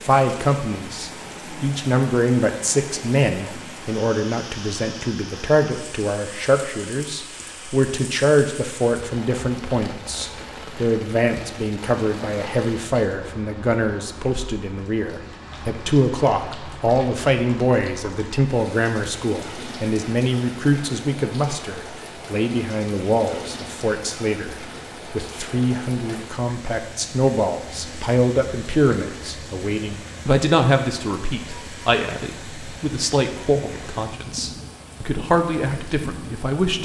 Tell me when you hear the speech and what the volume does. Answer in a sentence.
The speech can be heard from 0.0 to 36.8 s, at a steady volume.